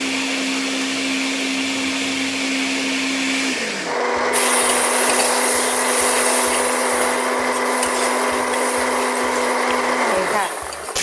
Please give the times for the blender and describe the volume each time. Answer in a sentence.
The blender can be heard from 0.0 to 10.9 s, at a steady volume.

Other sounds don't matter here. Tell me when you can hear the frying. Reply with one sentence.
The frying can be heard from 4.3 to 10.9 s.